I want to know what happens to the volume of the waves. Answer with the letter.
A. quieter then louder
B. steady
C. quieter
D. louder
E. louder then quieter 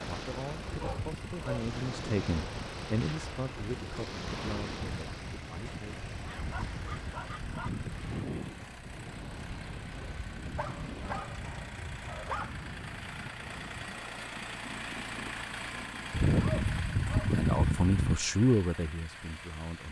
C.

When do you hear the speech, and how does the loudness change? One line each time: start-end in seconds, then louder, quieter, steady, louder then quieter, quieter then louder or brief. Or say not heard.
0.0-6.0 louder then quieter
17.2-19.8 brief.